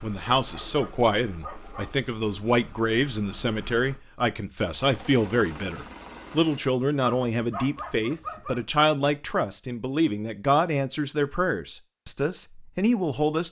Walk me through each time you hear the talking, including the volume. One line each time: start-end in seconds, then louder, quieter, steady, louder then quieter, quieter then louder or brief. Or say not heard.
0.0-13.4 steady.